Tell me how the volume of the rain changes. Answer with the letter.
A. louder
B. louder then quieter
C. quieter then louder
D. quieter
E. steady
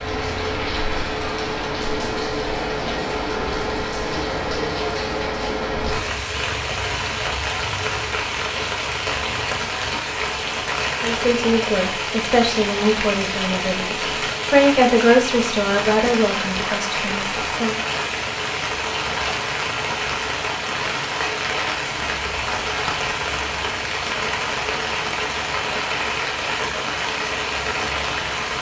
E.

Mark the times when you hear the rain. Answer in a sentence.
The rain can be heard from 0.0 to 28.5 s.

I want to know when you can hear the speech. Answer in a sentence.
You can hear the speech from 11.0 to 17.8 s.